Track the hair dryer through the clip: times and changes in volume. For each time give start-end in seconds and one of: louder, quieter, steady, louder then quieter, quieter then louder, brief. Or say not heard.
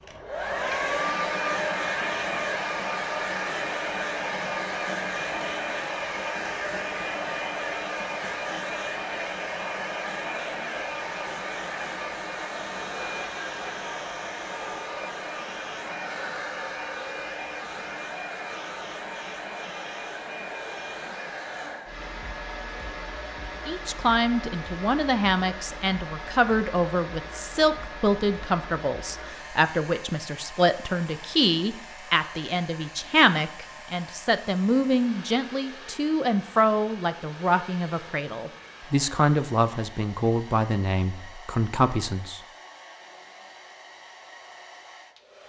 0.0-45.4 quieter.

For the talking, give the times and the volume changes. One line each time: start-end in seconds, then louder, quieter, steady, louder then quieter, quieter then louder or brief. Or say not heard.
23.6-42.4 steady.